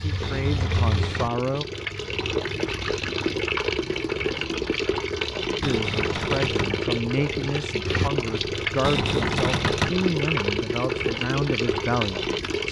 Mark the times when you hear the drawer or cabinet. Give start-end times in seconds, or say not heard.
0.2-1.4, 5.6-6.8, 8.8-10.0.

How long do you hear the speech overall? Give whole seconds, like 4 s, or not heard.
9 s.